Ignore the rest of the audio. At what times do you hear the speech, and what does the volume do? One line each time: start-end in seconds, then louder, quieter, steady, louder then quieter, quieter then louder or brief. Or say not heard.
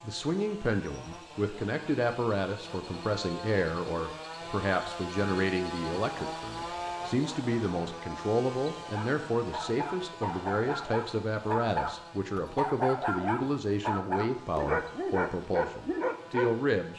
0.0-16.9 steady.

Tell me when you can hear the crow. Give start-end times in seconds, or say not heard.
not heard.